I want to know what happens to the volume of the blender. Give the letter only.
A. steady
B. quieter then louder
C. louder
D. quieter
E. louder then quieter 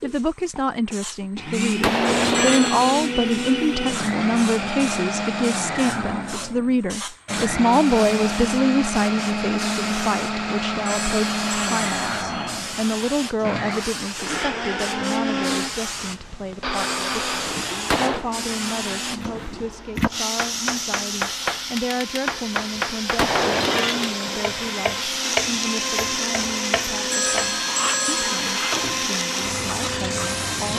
B.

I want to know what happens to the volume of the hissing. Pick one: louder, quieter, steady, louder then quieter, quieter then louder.
louder.